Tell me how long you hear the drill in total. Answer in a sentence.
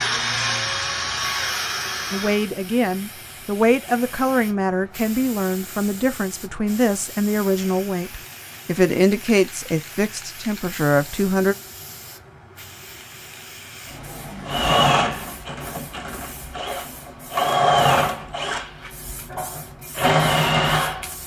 The drill can be heard for 9 seconds in total.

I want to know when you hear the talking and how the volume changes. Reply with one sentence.
You can hear the talking from 2.1 to 11.6 s, at a steady volume.